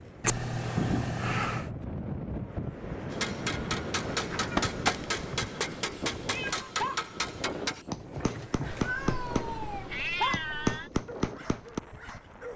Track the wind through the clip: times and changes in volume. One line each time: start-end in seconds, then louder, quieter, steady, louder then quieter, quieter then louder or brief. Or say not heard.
0.0-12.5 quieter.